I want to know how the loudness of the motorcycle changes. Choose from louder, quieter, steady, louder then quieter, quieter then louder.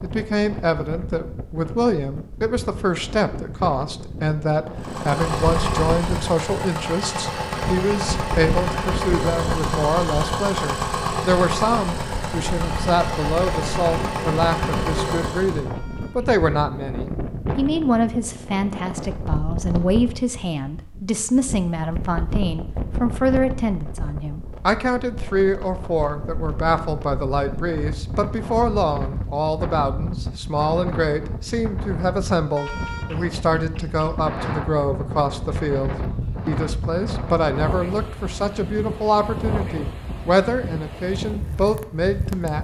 steady.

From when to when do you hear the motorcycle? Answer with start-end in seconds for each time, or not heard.
4.8-15.7.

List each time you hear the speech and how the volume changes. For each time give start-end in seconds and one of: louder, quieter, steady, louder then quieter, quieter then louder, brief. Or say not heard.
0.0-42.6 steady.